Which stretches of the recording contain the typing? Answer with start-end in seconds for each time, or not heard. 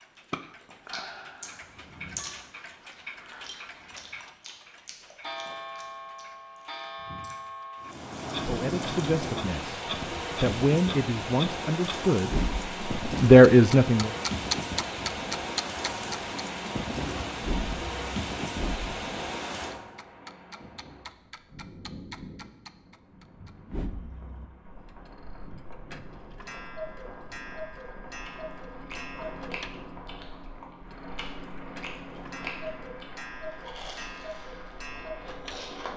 not heard.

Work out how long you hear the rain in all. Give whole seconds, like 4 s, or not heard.
28 s.